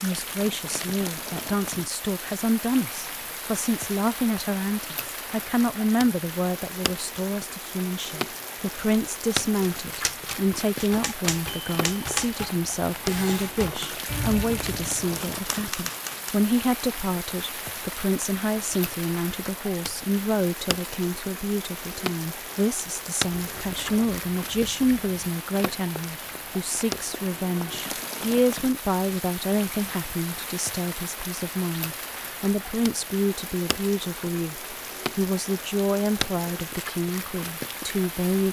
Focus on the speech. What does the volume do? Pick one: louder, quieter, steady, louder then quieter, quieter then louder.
steady.